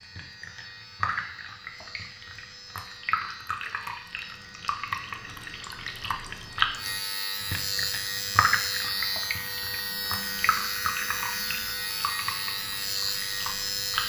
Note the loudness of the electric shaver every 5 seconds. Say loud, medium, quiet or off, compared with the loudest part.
quiet, loud, loud.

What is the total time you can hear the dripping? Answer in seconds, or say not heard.
14 s.